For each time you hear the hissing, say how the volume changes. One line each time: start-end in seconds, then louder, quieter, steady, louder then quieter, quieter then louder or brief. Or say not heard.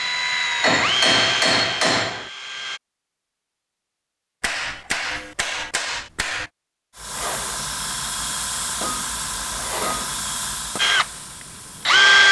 7.0-12.1 quieter.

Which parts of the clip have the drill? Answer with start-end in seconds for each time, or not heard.
0.0-2.8, 10.8-12.2.